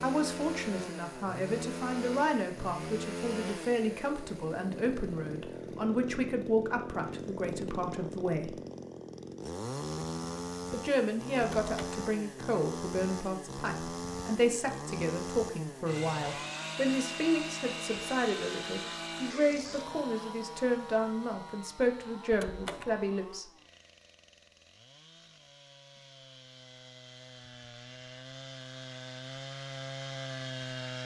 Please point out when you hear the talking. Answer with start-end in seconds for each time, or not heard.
0.0-8.6, 10.7-23.4.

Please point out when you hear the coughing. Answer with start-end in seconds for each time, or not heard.
not heard.